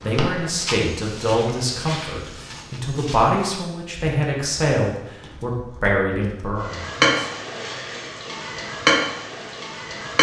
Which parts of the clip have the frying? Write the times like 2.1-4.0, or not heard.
0.0-2.2, 6.7-10.1.